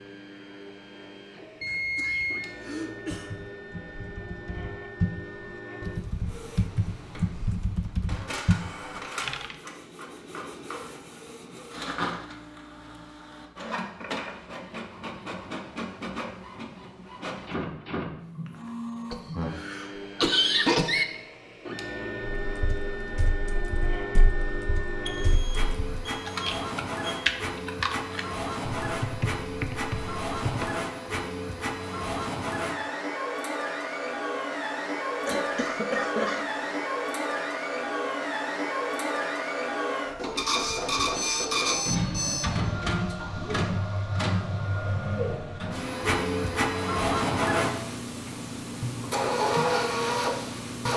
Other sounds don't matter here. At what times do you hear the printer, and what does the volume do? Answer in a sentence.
The printer can be heard from 0.0 to 50.9 s, getting louder.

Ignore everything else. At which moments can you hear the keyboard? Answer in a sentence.
The keyboard can be heard from 3.1 to 9.6 s and from 22.4 to 30.8 s.